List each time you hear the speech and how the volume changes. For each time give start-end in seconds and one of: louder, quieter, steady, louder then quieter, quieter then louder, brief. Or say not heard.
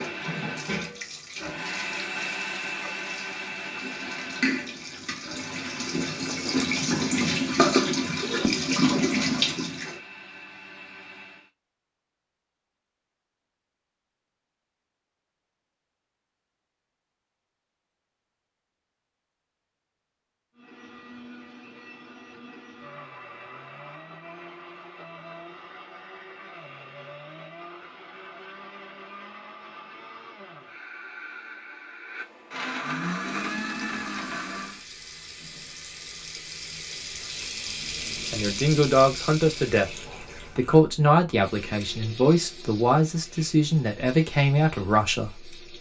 38.1-40.0 brief
40.5-45.5 steady.